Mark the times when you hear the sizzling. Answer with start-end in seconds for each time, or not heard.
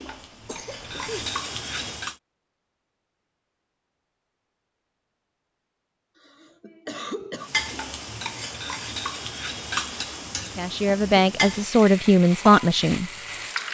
0.0-2.1, 7.3-13.6.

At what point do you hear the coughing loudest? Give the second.
7 s.